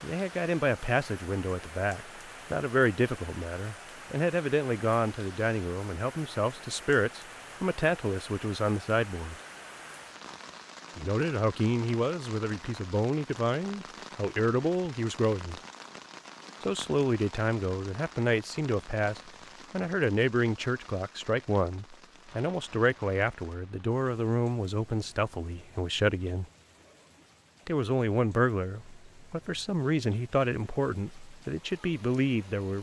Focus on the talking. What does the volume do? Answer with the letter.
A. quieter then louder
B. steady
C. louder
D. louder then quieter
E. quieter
B.